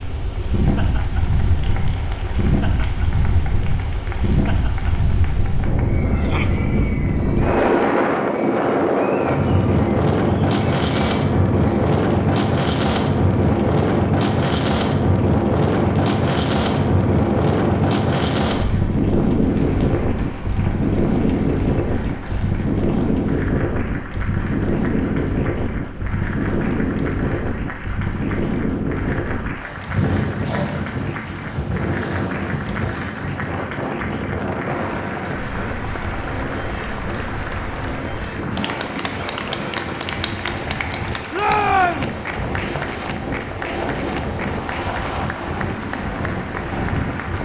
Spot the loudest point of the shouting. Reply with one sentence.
The loudest moment of the shouting is at 42 seconds.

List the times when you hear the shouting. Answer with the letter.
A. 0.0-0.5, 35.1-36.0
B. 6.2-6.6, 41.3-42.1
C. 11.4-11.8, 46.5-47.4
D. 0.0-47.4
B.